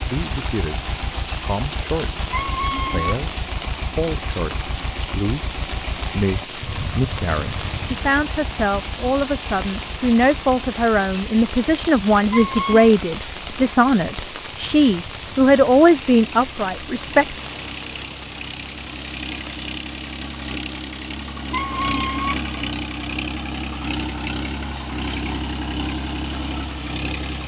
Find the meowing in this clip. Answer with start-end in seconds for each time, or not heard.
2.3-3.2, 12.3-12.9, 21.5-22.4.